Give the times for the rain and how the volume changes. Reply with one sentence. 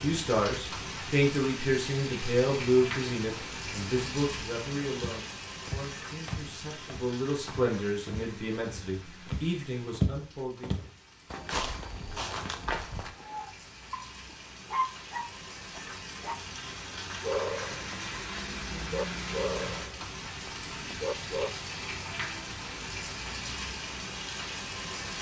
The rain can be heard from 0.0 to 25.1 s, getting quieter then louder.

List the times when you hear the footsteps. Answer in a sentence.
The footsteps can be heard from 5.0 to 13.2 s.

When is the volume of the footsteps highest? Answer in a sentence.
The volume of the footsteps peaks at 10 seconds.